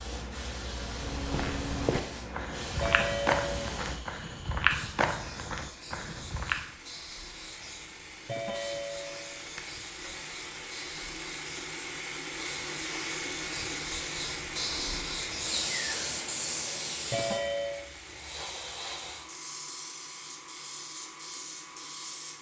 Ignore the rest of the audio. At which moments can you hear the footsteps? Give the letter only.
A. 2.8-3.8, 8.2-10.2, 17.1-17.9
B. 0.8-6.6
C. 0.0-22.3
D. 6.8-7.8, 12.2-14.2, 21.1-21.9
B.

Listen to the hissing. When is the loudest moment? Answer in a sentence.
The loudest moment of the hissing is at 16 seconds.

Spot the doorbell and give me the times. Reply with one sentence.
The doorbell can be heard from 2.8 to 3.8 s, from 8.2 to 10.2 s and from 17.1 to 17.9 s.